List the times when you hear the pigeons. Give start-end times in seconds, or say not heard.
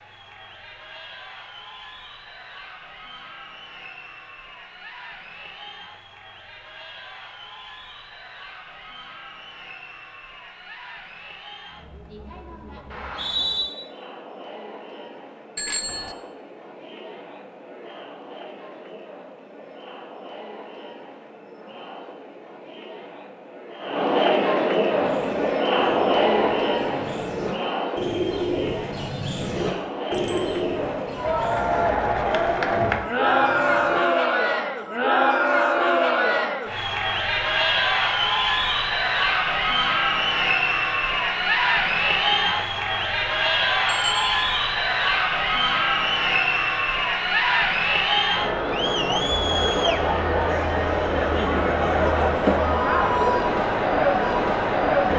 24.9-34.0.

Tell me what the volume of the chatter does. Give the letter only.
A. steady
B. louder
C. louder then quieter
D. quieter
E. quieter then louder
B.